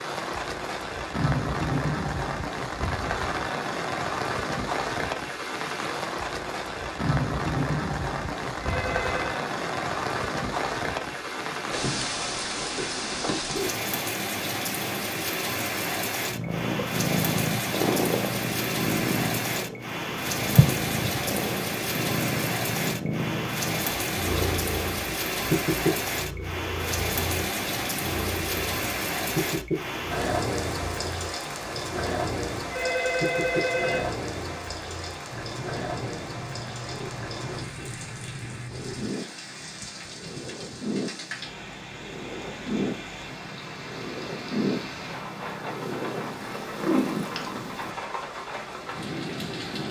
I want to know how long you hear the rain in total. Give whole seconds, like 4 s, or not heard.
50 s.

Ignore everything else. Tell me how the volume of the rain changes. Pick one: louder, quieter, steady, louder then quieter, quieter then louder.
quieter.